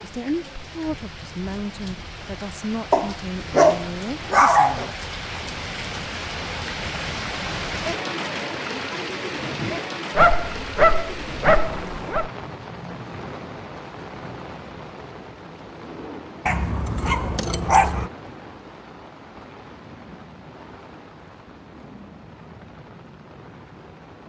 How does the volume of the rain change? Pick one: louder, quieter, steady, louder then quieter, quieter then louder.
louder then quieter.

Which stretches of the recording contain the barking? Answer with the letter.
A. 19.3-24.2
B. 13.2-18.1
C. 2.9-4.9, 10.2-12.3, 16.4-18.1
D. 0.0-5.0
C.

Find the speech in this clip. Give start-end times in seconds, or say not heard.
0.0-5.0.